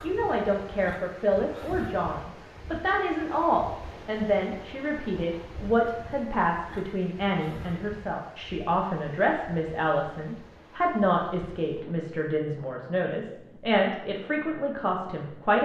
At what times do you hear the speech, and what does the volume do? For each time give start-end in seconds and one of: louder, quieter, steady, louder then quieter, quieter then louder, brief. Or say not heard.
0.0-15.6 steady.